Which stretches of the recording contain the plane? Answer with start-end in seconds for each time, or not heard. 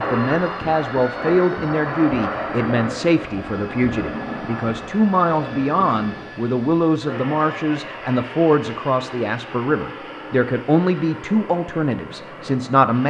0.0-13.0.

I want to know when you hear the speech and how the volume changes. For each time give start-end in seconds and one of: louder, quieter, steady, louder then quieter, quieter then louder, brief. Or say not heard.
0.0-13.0 steady.